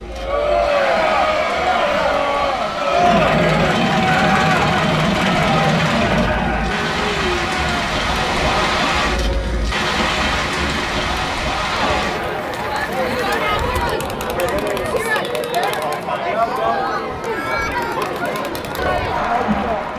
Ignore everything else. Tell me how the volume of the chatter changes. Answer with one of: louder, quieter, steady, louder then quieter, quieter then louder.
quieter then louder.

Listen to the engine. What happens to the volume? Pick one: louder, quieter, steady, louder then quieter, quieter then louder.
quieter.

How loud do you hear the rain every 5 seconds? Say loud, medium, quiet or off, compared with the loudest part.
medium, loud, loud, off.